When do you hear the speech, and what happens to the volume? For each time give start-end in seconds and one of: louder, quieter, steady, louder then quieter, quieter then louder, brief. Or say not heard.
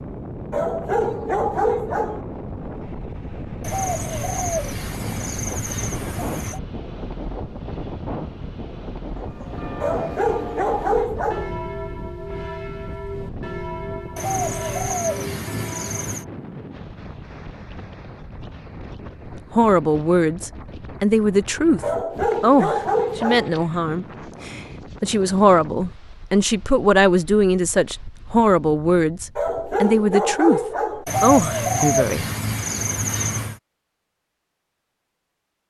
19.3-30.6 steady
31.2-32.3 brief.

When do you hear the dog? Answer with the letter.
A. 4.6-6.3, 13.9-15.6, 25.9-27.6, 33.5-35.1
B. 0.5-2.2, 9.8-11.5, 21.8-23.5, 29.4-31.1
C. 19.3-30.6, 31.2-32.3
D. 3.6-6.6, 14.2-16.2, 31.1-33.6
B.